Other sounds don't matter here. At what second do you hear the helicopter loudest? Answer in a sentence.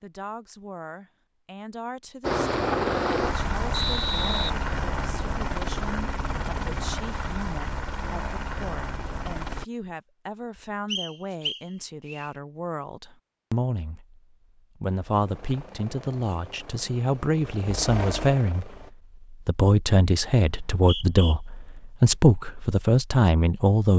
The loudest moment of the helicopter is at 3 seconds.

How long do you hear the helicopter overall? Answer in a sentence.
The helicopter can be heard for 11 seconds in total.